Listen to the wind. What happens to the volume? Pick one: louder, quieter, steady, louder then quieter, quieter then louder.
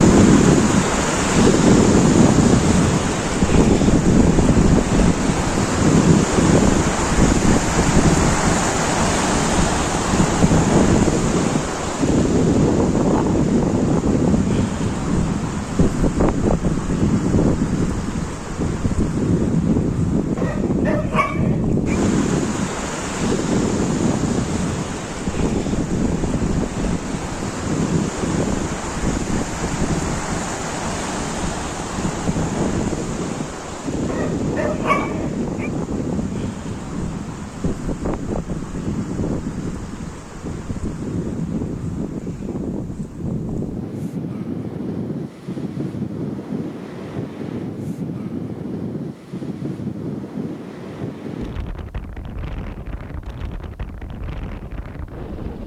quieter.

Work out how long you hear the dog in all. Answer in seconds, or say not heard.
3 s.